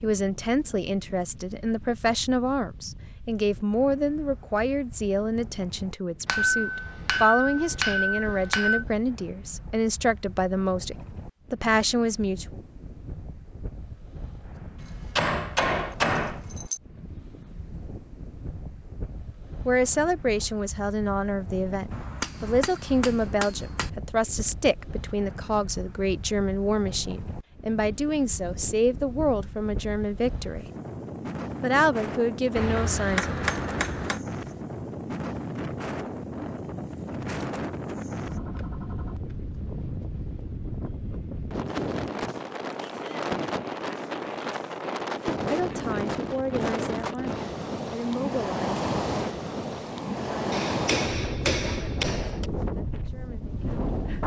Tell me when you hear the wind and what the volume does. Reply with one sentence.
You can hear the wind from 0.0 to 54.2 s, getting louder.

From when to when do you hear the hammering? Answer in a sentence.
The hammering can be heard from 6.2 to 8.8 s, from 14.8 to 16.8 s, from 21.9 to 23.9 s, from 32.5 to 34.2 s and from 50.5 to 52.5 s.